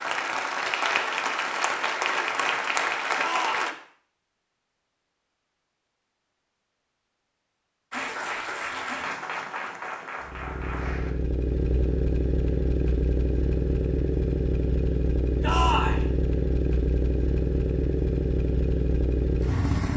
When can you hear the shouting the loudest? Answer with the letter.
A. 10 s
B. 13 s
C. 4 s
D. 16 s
D.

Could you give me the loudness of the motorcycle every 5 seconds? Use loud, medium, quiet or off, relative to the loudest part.
off, off, loud, loud.